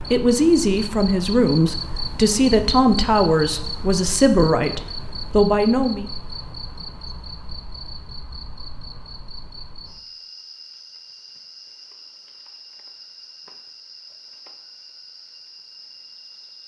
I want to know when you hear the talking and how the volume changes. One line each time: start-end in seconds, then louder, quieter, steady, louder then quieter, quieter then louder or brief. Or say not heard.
0.0-6.0 steady.